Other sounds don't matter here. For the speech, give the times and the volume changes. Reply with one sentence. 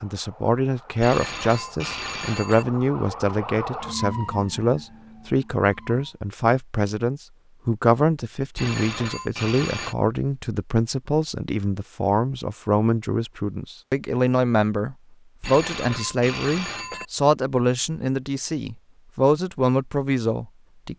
You can hear the speech from 0.0 to 20.9 s, at a steady volume.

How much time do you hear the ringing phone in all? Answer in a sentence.
The ringing phone can be heard for 5 seconds in total.